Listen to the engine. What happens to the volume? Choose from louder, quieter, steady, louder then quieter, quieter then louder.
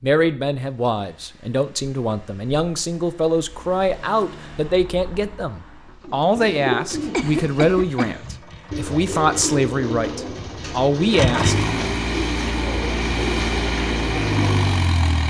louder.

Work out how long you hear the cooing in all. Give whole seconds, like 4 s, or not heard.
9 s.